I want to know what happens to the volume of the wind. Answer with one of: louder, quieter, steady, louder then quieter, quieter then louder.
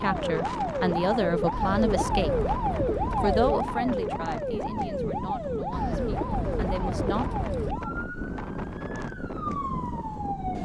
steady.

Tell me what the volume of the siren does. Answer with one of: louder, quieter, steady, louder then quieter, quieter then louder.
quieter.